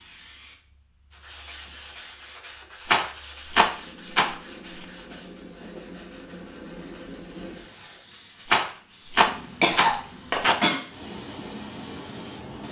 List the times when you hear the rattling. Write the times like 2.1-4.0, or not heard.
2.9-4.8, 8.4-10.6.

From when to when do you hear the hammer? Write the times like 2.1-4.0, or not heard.
not heard.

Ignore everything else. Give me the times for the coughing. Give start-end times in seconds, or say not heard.
9.2-10.8.